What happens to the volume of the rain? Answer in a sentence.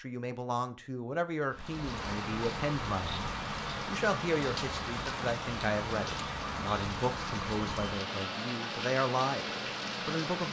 The volume of the rain stays about the same.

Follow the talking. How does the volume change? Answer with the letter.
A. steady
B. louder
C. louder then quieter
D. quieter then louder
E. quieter
A.